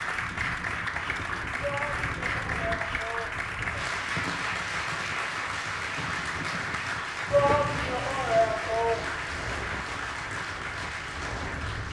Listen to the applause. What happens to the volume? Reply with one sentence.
The loudness of the applause stays about the same.